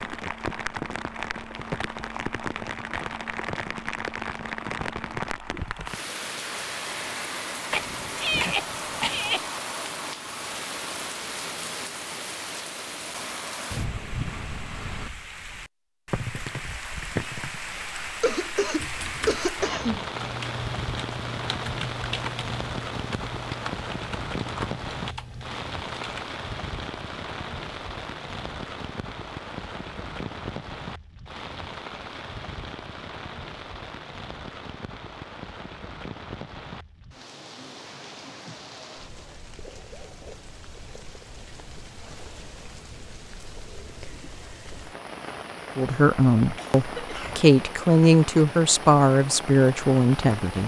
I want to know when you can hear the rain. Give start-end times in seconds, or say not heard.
0.0-50.6.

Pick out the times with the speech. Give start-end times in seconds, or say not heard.
45.8-50.6.